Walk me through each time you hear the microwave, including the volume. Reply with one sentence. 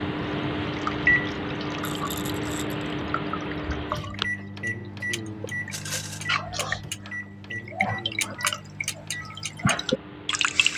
You can hear the microwave from 0.0 to 10.7 s, getting quieter.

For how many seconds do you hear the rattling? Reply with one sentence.
You can hear the rattling for 2 seconds altogether.